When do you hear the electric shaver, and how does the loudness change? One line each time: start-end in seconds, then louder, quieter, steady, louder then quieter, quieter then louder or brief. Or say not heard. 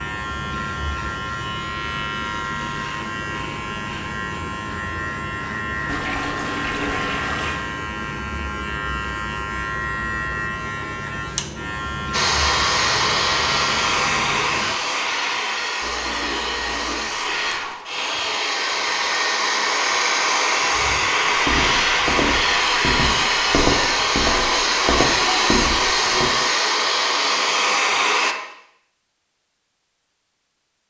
0.0-14.8 steady.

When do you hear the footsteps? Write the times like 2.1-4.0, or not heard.
20.7-26.3.